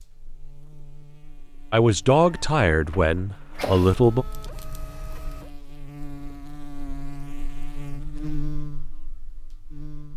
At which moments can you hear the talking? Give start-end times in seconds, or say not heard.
1.7-4.2.